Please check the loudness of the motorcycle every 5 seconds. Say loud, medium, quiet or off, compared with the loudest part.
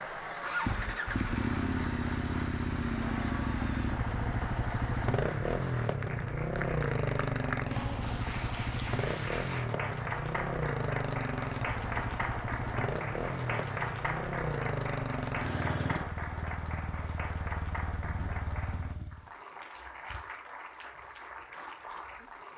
loud, loud, loud, medium, off.